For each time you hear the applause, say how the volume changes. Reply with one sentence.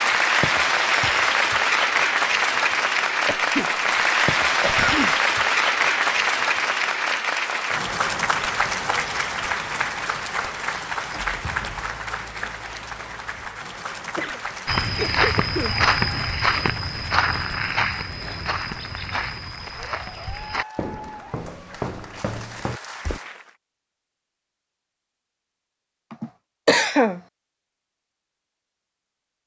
You can hear the applause from 0.0 to 23.6 s, getting quieter.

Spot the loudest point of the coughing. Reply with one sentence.
The volume of the coughing peaks at 27 seconds.